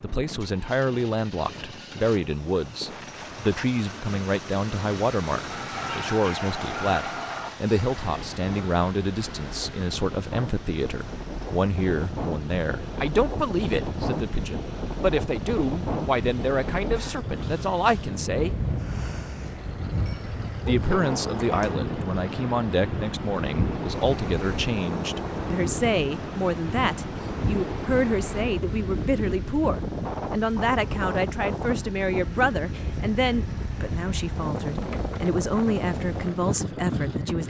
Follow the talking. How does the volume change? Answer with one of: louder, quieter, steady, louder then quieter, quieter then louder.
steady.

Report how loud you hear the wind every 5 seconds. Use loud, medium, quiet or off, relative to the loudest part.
quiet, medium, loud, loud, loud, loud, loud, loud.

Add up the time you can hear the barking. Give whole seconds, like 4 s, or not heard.
4 s.